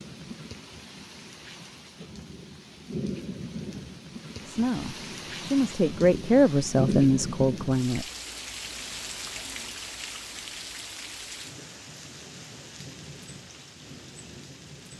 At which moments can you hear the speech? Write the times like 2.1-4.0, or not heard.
4.5-8.1.